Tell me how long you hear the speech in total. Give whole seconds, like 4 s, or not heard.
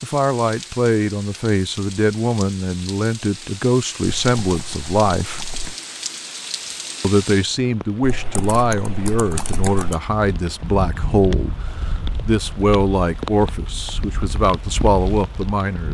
14 s.